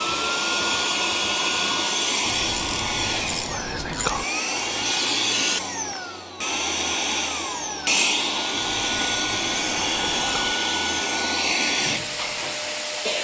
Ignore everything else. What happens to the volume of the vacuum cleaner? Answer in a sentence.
The volume of the vacuum cleaner stays about the same.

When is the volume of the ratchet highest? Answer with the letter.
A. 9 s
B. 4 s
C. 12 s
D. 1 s
B.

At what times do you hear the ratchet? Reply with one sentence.
You can hear the ratchet from 2.2 to 4.2 s and from 8.5 to 10.6 s.